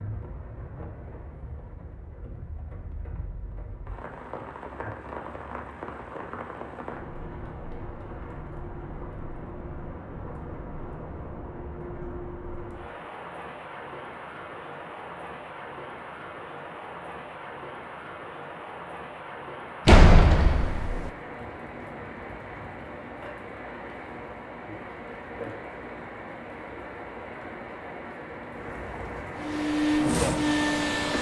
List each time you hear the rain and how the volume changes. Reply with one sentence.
You can hear the rain from 0.0 to 31.1 s, getting louder.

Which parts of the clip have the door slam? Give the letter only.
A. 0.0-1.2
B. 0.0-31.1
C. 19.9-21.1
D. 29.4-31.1
C.